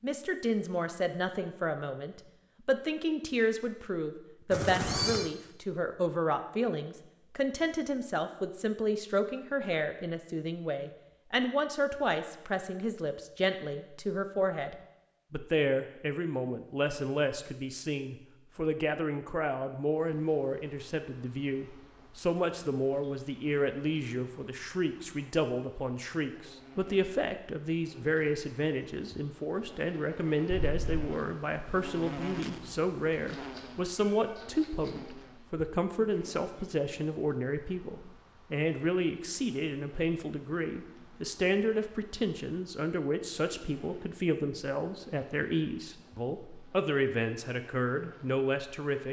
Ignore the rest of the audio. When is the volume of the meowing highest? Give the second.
5 s.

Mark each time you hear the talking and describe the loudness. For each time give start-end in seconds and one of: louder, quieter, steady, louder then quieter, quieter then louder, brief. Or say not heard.
0.0-49.0 steady.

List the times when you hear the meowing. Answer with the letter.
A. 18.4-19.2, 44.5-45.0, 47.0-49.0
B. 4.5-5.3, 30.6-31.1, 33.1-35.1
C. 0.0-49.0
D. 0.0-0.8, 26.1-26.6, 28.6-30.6
B.